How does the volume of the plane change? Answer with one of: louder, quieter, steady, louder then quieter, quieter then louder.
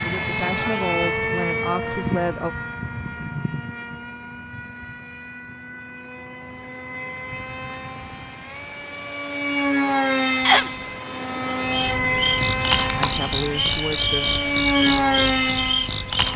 quieter then louder.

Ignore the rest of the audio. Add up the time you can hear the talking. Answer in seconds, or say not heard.
4 s.